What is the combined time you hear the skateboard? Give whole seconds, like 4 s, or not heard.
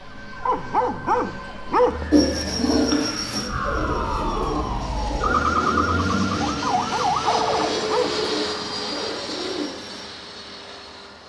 not heard.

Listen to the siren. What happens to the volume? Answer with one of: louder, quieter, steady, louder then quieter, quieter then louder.
louder.